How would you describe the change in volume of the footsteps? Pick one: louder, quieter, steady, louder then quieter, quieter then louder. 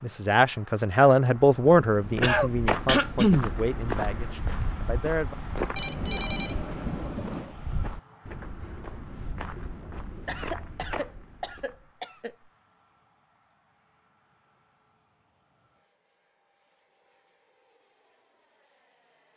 quieter.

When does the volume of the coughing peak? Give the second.
3 s.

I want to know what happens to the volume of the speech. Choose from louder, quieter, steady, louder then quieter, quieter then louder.
quieter.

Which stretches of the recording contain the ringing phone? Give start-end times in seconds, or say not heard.
5.8-7.5.